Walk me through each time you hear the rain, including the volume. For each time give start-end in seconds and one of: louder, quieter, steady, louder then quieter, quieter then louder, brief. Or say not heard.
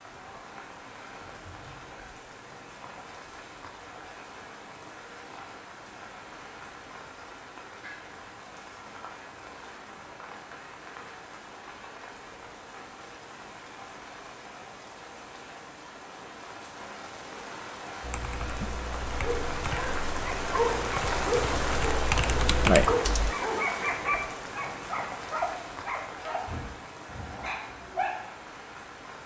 0.0-29.2 louder then quieter.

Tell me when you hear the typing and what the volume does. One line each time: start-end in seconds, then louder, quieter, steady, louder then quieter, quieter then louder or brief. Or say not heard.
18.0-23.4 louder.